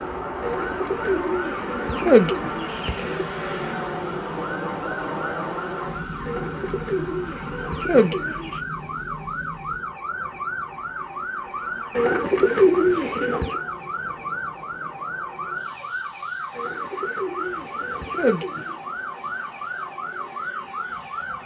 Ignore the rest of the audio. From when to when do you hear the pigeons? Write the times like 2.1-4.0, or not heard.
0.4-3.2, 6.2-8.6, 11.9-13.6, 16.6-18.8.